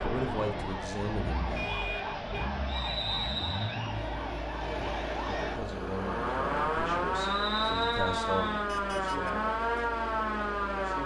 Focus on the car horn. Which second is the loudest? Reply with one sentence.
The loudest moment of the car horn is at 2 seconds.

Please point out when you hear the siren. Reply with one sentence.
You can hear the siren from 0.0 to 11.0 s.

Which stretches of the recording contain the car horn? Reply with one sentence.
The car horn can be heard from 1.6 to 2.5 s and from 8.7 to 9.3 s.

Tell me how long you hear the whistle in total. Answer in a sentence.
The whistle can be heard for 3 seconds in total.